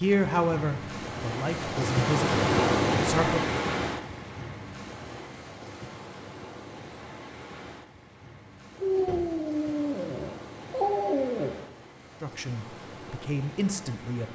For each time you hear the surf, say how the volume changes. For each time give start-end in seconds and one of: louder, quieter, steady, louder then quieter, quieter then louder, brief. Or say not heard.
0.0-14.2 quieter.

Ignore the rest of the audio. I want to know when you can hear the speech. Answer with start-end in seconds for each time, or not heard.
0.0-3.5, 12.2-14.2.